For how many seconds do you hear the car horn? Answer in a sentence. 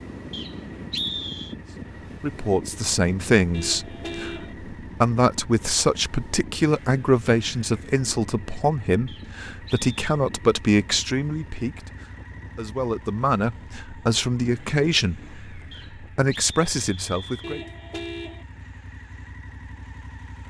The car horn can be heard for 2 seconds in total.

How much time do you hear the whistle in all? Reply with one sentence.
The whistle can be heard for 4 seconds in total.